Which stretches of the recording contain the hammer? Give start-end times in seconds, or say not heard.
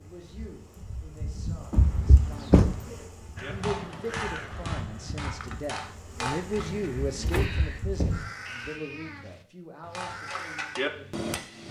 3.4-6.9, 9.9-11.6.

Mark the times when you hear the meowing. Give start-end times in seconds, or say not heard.
1.7-2.9, 7.2-9.2.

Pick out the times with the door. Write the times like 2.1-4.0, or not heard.
2.2-2.9, 6.5-7.6.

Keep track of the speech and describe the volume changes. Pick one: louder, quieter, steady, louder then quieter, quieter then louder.
louder then quieter.